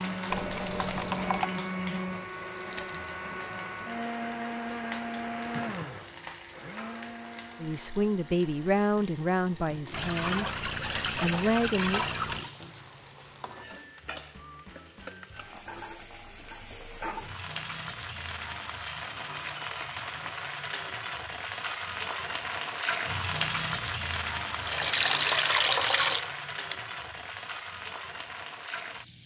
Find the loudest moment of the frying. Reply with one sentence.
The volume of the frying peaks at 23 seconds.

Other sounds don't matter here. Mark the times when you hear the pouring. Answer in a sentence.
You can hear the pouring from 0.3 to 1.5 s, from 9.9 to 12.5 s and from 24.6 to 26.3 s.